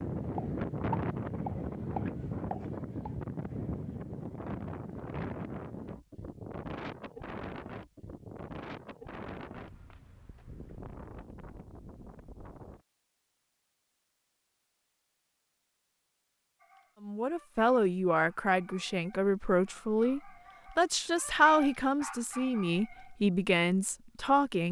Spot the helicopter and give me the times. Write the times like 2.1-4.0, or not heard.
not heard.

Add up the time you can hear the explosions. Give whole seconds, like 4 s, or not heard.
3 s.